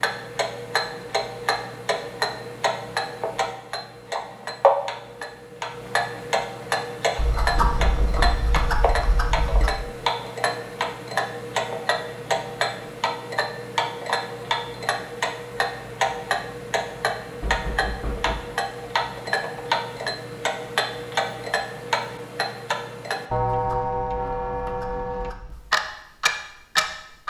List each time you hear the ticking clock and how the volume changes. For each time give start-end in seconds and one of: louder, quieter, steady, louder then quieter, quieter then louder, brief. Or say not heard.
0.0-27.2 steady.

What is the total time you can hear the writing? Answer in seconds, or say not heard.
5 s.